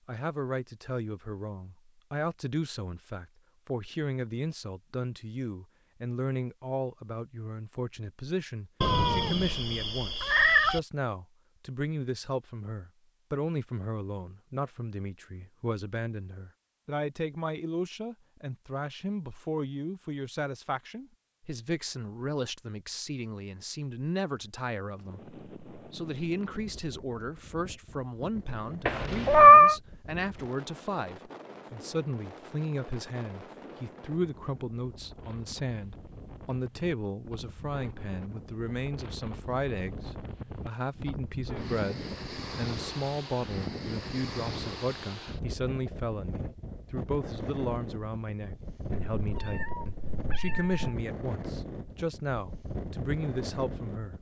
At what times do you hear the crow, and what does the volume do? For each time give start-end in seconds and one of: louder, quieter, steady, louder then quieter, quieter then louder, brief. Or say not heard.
not heard.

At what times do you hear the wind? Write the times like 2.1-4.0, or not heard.
24.9-54.1.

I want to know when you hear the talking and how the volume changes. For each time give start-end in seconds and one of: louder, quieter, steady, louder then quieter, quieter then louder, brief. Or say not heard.
0.1-54.1 steady.